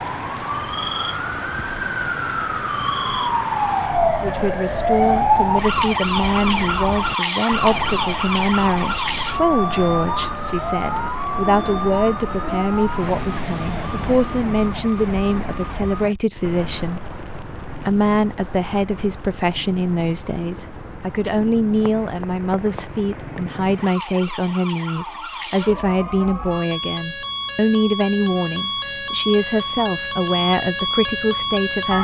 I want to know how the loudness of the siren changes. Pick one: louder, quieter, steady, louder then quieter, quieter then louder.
quieter then louder.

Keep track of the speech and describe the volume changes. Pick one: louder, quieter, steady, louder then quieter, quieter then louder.
steady.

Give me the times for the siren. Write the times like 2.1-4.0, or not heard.
0.0-31.9.